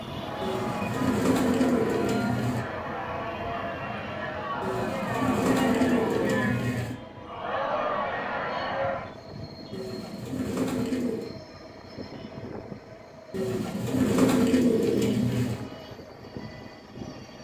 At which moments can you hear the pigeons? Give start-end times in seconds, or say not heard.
0.4-2.6, 4.6-7.0, 9.7-11.3, 13.3-15.7.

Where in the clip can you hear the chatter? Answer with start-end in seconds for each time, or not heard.
0.1-9.1.